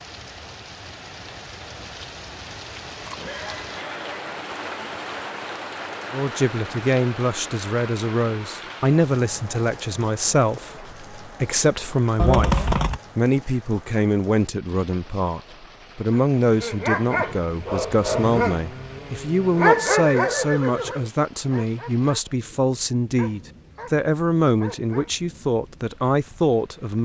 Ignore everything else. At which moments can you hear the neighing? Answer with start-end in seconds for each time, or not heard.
2.8-4.2, 12.2-13.0, 19.7-21.1.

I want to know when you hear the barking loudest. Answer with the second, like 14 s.
20 s.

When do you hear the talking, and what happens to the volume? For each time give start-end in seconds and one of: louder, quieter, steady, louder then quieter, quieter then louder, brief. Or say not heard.
6.1-27.0 steady.